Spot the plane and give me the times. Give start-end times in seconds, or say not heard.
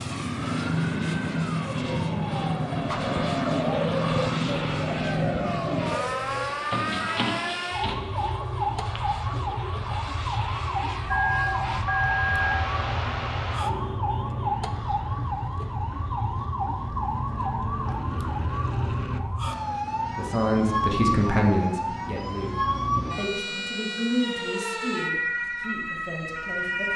0.0-19.2.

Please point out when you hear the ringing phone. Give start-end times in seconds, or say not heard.
11.1-12.6.